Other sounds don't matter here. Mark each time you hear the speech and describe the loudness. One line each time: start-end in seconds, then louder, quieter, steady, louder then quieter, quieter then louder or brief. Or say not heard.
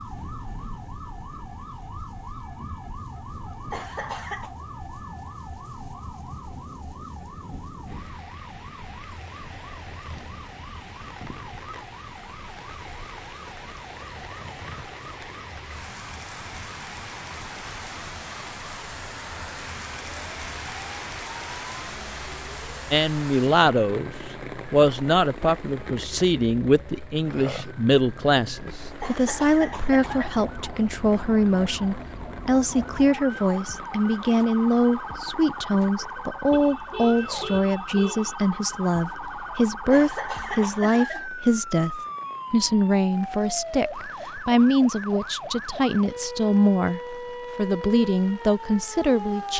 22.9-24.1 brief
24.7-49.5 steady.